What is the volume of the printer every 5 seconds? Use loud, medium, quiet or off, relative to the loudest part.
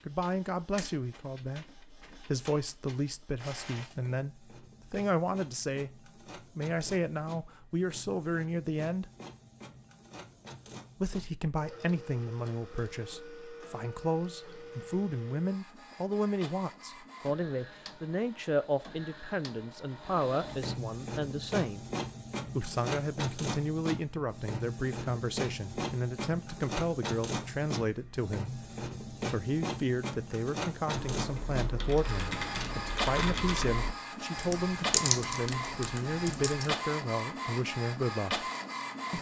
quiet, quiet, medium, quiet, loud, loud, loud, loud.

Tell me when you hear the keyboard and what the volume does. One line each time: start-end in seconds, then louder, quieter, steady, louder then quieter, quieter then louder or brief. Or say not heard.
30.9-36.8 louder then quieter.